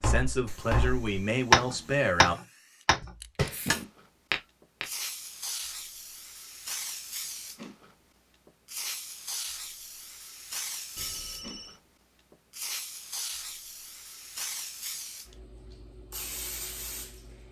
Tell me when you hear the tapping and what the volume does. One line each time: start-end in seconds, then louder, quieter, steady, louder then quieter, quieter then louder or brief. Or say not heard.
0.0-4.9 louder then quieter.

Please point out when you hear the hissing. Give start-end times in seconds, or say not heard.
0.2-17.4.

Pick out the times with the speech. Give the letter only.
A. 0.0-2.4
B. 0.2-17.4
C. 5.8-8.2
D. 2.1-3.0
A.